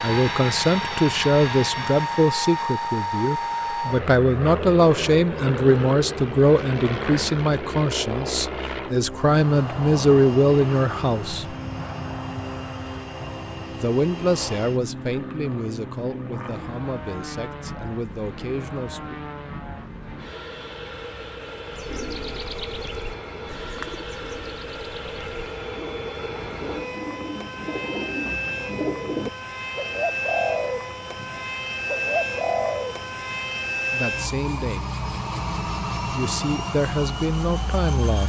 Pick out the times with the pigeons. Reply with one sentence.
You can hear the pigeons from 21.7 to 33.4 s.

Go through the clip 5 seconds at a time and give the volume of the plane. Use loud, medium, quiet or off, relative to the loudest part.
loud, loud, medium, medium, medium, medium, loud, loud.